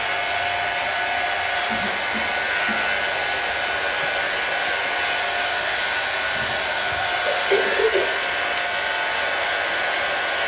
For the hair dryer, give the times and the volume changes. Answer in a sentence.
You can hear the hair dryer from 0.0 to 10.4 s, at a steady volume.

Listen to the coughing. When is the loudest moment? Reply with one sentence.
The loudest moment of the coughing is at 8 seconds.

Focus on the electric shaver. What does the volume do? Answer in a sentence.
The volume of the electric shaver stays about the same.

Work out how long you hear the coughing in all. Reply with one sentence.
The coughing can be heard for 3 seconds in total.